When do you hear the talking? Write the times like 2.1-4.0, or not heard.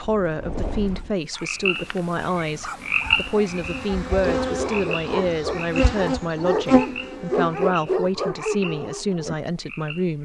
0.0-10.1.